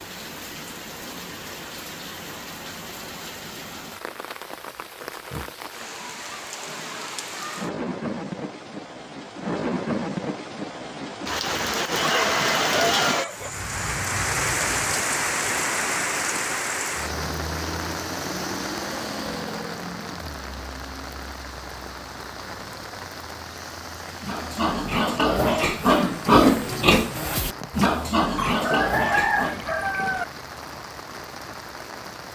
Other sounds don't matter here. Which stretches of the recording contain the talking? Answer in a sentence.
The talking can't be heard in this clip.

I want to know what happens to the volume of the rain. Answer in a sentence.
The volume of the rain goes up, then down.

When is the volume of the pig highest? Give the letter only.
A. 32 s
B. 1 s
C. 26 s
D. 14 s
C.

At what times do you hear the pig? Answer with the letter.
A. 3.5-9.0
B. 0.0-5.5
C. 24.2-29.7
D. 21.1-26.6
C.